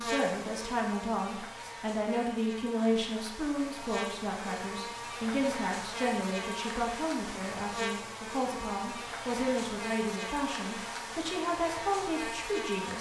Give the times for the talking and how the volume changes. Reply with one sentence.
The talking can be heard from 0.0 to 12.9 s, at a steady volume.